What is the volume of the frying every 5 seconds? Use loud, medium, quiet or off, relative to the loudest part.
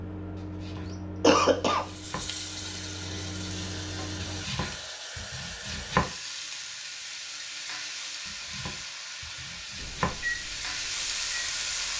medium, medium, loud.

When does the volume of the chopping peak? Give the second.
6 s.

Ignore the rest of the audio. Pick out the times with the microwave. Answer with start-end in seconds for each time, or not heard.
0.0-4.5, 9.8-11.9.